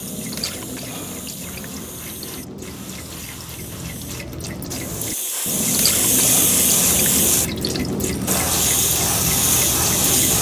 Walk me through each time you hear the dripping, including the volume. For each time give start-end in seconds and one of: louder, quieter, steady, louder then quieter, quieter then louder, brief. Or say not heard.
0.0-10.3 louder.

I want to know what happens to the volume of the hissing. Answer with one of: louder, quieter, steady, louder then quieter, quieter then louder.
louder.